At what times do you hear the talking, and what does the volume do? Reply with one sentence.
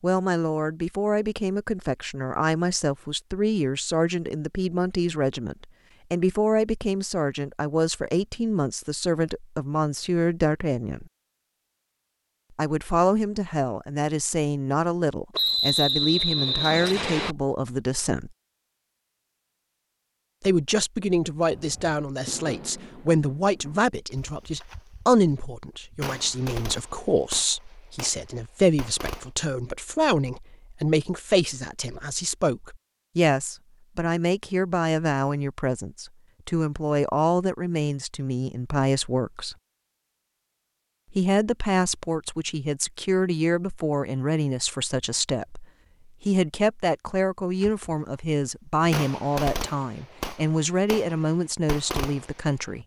The talking can be heard from 0.0 to 11.1 s, at a steady volume; from 12.6 to 18.3 s, at a steady volume; from 20.4 to 39.5 s, at a steady volume; and from 41.1 to 52.8 s, at a steady volume.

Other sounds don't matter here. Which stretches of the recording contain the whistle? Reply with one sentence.
The whistle can be heard from 15.3 to 17.4 s.